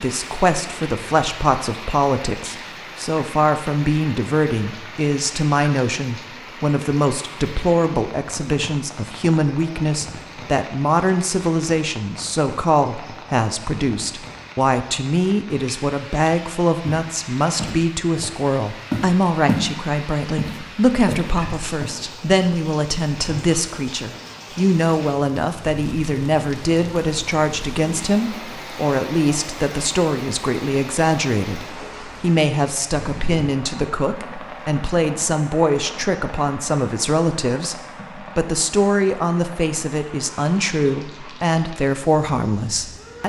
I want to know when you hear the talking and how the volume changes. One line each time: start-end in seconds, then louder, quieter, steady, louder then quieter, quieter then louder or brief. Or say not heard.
0.0-43.2 steady.